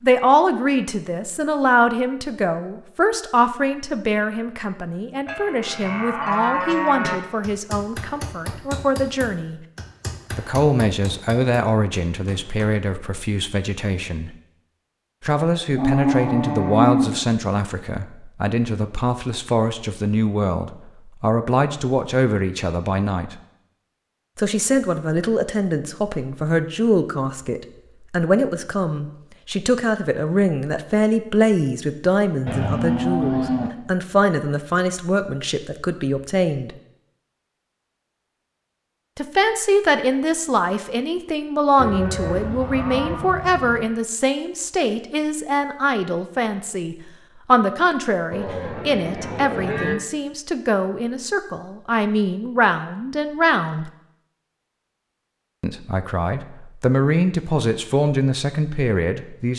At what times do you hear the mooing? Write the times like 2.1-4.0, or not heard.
5.2-7.2, 15.8-17.2, 32.5-33.7, 41.8-43.8, 48.3-50.0.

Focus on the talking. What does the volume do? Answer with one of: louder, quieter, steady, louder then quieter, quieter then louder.
steady.